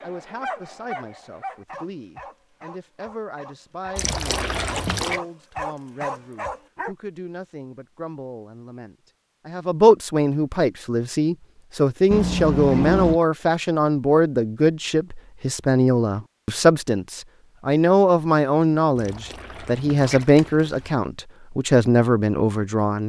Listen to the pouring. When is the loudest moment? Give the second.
13 s.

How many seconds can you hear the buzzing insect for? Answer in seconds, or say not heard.
not heard.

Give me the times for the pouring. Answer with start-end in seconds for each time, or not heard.
4.0-5.2, 12.1-13.2, 18.9-20.9.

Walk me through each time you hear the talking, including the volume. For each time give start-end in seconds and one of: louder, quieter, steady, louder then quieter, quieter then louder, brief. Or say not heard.
0.0-23.0 louder.